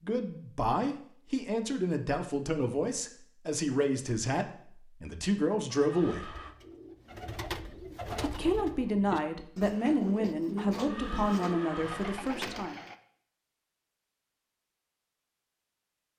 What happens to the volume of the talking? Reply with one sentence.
The loudness of the talking stays about the same.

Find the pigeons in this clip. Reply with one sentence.
You can hear the pigeons from 6.2 to 12.9 s.